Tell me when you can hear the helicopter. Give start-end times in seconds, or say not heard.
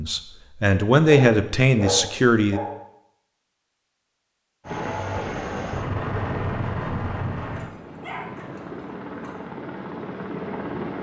4.7-10.9.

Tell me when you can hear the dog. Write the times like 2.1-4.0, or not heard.
1.1-2.9, 7.5-9.4.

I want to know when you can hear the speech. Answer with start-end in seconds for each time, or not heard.
0.0-2.6.